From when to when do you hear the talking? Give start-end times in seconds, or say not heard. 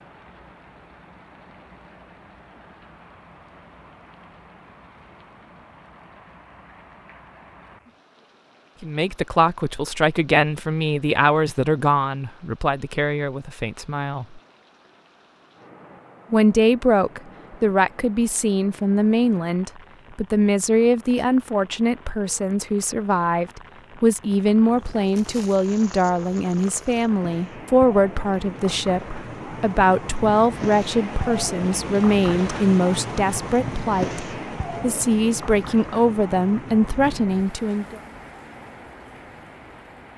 8.8-14.4, 16.3-38.0.